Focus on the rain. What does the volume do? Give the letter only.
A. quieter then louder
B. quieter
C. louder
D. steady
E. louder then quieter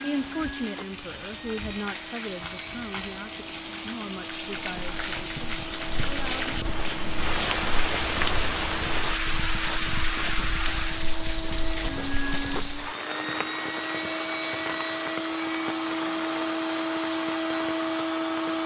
E.